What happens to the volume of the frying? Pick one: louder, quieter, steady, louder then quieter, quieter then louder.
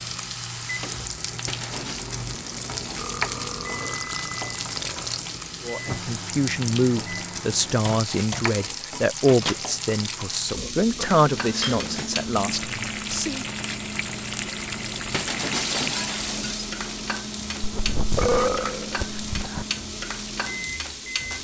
steady.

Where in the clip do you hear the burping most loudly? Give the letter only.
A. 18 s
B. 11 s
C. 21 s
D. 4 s
A.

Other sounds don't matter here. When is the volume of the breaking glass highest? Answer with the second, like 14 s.
16 s.